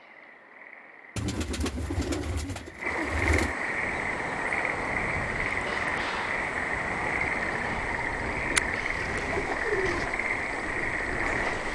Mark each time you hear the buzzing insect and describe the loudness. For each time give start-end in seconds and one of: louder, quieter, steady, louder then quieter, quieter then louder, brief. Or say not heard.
not heard.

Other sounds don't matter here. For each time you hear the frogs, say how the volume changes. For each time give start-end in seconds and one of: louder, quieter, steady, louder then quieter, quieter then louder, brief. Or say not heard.
0.0-11.7 louder.